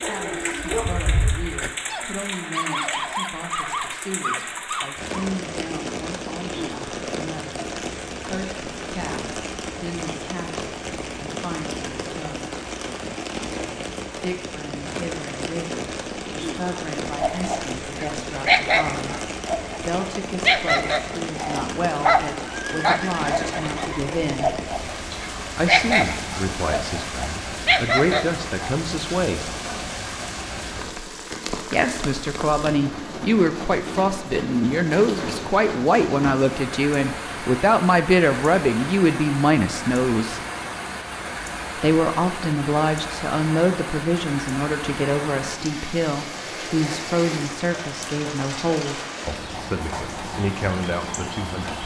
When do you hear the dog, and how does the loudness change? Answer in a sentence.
You can hear the dog from 0.0 to 5.3 s, getting quieter then louder; and from 17.1 to 28.8 s, at a steady volume.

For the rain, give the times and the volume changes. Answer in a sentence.
You can hear the rain from 0.0 to 51.8 s, at a steady volume.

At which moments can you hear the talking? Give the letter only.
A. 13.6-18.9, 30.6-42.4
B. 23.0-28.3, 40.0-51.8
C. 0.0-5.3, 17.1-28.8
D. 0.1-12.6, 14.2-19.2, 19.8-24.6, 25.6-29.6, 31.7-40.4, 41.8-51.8
D.